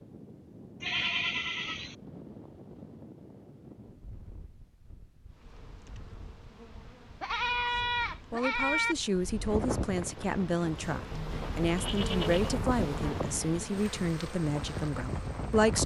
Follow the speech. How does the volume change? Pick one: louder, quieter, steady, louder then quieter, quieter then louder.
steady.